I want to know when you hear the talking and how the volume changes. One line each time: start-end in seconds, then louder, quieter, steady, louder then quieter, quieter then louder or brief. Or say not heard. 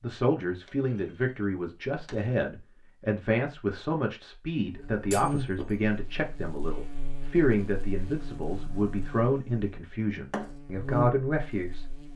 0.0-12.0 steady.